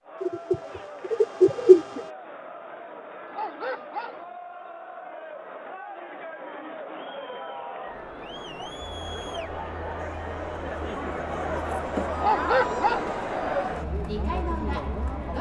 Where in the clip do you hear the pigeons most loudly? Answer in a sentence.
The volume of the pigeons peaks at 2 seconds.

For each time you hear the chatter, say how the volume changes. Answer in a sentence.
You can hear the chatter from 0.0 to 15.3 s, getting louder.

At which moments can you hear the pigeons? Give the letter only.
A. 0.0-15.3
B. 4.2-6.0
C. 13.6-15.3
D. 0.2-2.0
D.